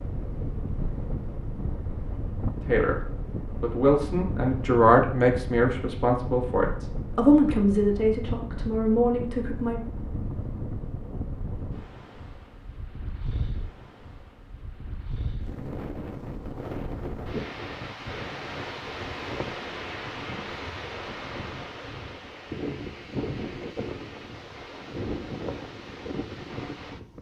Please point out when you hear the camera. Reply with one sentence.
You can't hear the camera here.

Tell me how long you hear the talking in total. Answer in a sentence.
The talking can be heard for 7 seconds in total.